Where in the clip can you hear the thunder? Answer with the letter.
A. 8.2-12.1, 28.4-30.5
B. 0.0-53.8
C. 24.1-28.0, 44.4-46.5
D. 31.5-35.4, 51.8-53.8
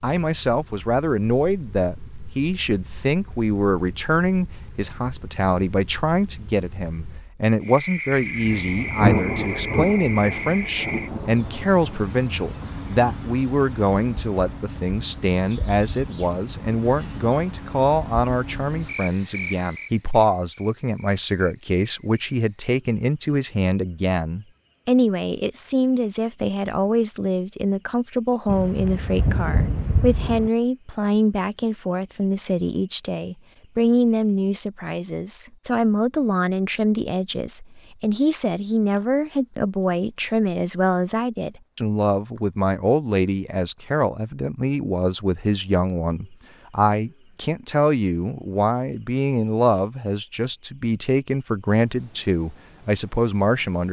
A.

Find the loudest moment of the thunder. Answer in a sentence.
The loudest moment of the thunder is at 9 seconds.